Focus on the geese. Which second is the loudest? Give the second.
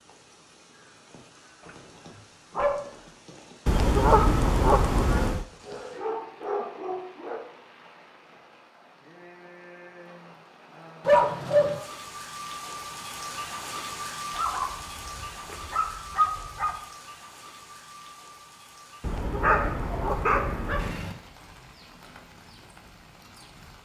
4 s.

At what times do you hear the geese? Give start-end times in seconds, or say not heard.
3.6-5.5, 19.0-21.1.